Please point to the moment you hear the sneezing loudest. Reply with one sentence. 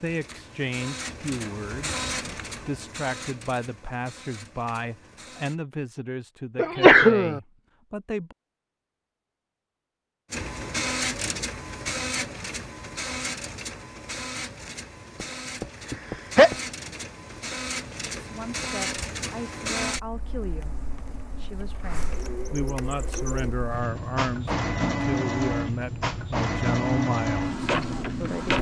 The loudest moment of the sneezing is at 7 seconds.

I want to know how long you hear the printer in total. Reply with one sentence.
The printer can be heard for 24 seconds in total.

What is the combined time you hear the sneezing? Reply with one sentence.
The sneezing can be heard for 2 seconds in total.